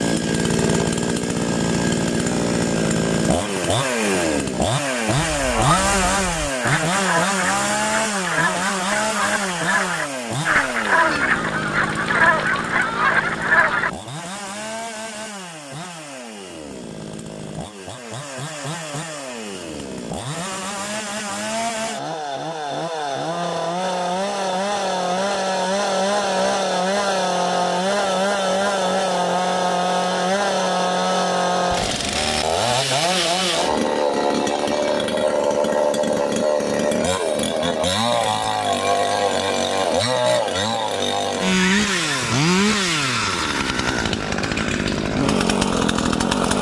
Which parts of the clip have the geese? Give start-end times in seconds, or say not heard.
5.3-13.9.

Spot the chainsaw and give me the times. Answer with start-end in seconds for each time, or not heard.
0.0-46.5.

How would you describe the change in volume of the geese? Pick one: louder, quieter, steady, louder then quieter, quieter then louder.
louder.